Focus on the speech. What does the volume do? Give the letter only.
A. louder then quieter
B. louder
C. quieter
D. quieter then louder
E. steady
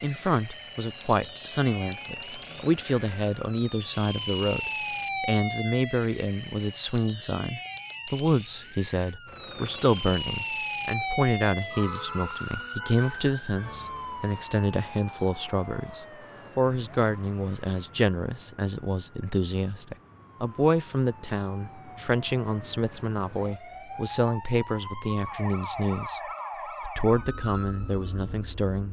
E.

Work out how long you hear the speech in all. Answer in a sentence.
The speech can be heard for 29 seconds in total.